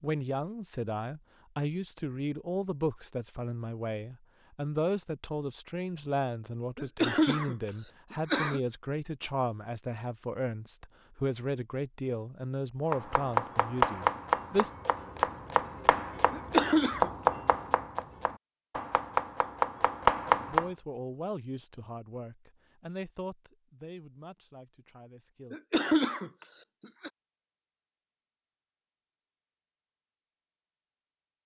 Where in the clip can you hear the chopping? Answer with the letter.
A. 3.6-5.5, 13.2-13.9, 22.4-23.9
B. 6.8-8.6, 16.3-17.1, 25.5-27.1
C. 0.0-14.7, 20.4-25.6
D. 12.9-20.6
D.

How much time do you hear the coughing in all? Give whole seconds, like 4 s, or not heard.
4 s.